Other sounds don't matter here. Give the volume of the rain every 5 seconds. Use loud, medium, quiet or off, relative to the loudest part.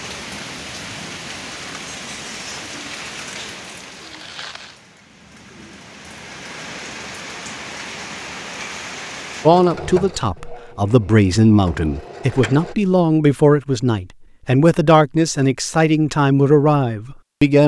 loud, loud, off, off.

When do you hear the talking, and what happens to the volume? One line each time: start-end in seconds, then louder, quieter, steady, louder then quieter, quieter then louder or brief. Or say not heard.
9.4-17.6 steady.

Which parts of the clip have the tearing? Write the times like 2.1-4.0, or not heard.
3.9-4.8.